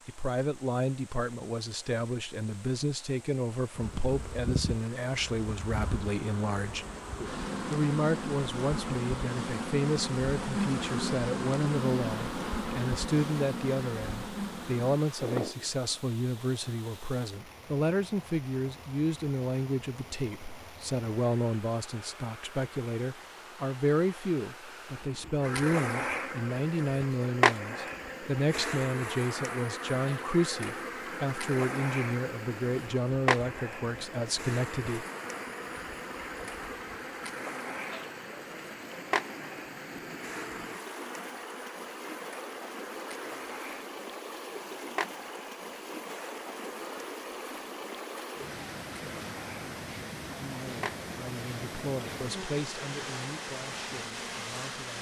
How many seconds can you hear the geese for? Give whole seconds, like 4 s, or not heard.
not heard.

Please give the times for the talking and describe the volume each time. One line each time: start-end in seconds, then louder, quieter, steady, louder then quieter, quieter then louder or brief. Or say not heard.
0.1-6.8 steady
7.7-35.0 steady
50.4-54.9 louder then quieter.